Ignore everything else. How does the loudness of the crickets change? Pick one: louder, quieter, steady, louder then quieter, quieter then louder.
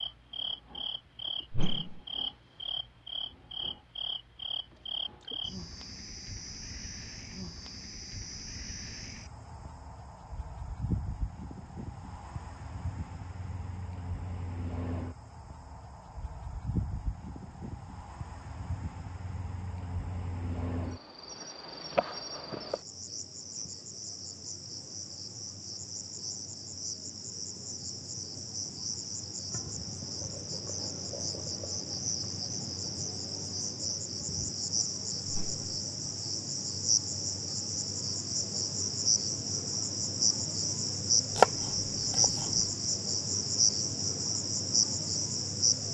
louder.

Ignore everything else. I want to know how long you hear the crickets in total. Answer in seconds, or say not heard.
46 s.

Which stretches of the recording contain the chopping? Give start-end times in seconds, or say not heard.
41.4-42.7.